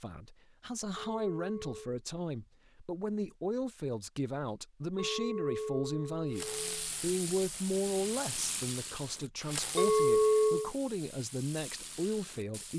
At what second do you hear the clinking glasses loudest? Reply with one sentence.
The volume of the clinking glasses peaks at 10 seconds.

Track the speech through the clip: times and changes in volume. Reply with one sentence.
The speech can be heard from 0.0 to 12.7 s, at a steady volume.